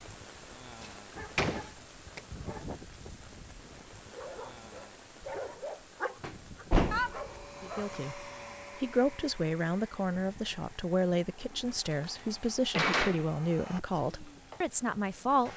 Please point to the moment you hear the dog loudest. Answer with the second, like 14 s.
7 s.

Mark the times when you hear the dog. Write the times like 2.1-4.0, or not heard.
1.1-8.1.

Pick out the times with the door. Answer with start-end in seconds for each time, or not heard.
0.8-2.2, 6.2-7.2, 12.0-13.2.